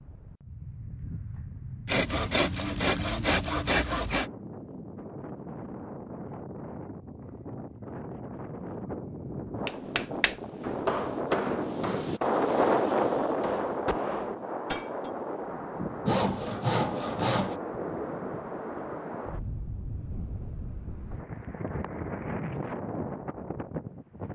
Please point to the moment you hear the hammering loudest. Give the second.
11 s.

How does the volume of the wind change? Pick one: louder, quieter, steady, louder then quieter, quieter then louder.
louder then quieter.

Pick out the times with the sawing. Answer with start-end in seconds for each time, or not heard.
1.9-4.2, 16.1-17.6.